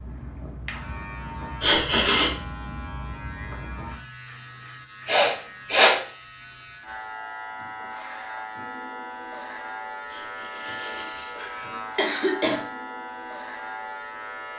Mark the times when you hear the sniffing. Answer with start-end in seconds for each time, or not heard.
1.6-2.4, 5.0-6.0, 10.1-12.7.